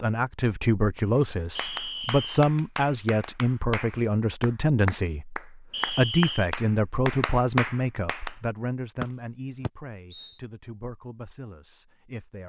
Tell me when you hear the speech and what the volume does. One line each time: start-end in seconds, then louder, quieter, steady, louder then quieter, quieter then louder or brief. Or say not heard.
0.0-12.4 quieter.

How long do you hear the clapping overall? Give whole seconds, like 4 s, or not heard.
7 s.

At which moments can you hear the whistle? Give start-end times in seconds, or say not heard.
1.6-2.5, 5.7-6.5, 9.0-10.3.